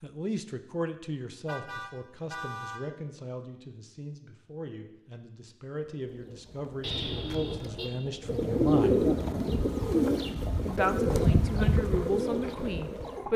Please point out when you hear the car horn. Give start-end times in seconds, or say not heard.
1.4-2.9, 6.8-7.9.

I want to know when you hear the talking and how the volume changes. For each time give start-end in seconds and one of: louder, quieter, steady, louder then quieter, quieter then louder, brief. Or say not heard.
0.0-9.1 quieter then louder
10.7-13.3 brief.